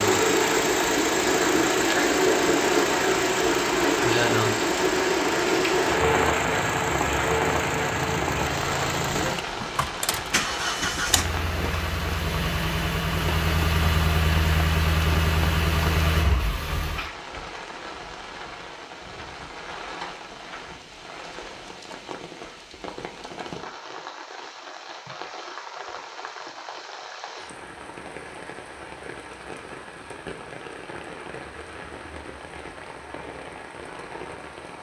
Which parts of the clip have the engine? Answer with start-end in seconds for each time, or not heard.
0.0-17.1.